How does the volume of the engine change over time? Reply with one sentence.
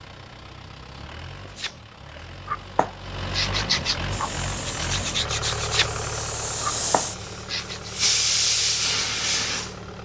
The volume of the engine goes up, then down.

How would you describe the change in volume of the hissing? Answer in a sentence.
The loudness of the hissing goes up.